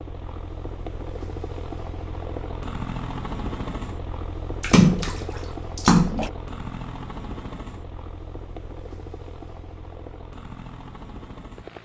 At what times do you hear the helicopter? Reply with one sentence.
The helicopter can be heard from 0.0 to 11.8 s.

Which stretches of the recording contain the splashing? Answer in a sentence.
You can hear the splashing from 4.6 to 6.3 s.